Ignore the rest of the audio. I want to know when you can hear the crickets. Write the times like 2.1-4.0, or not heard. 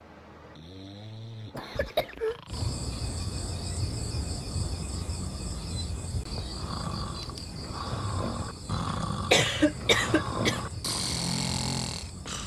2.5-12.4.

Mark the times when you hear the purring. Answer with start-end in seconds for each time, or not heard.
not heard.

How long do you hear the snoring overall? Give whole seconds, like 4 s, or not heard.
9 s.